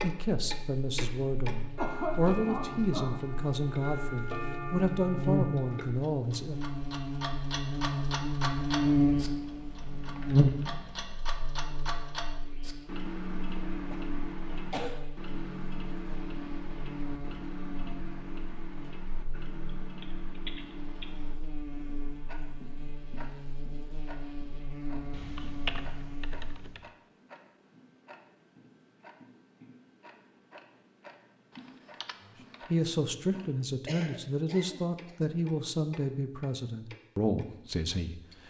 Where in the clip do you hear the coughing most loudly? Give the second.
2 s.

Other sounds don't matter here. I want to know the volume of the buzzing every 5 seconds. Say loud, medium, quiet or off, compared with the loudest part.
quiet, loud, loud, quiet, quiet, quiet, off, off.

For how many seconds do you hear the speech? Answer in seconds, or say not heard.
12 s.